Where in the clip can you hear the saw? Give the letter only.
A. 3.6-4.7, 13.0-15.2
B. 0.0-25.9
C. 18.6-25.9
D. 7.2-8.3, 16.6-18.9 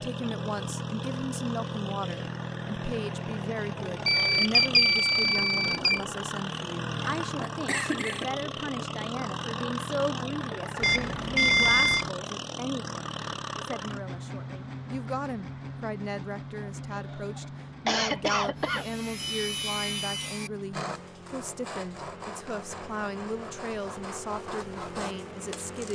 C.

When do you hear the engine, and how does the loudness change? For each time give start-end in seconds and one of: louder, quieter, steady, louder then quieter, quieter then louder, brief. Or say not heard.
0.0-25.9 quieter.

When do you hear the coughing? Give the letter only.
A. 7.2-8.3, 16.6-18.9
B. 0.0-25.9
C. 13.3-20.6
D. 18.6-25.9
A.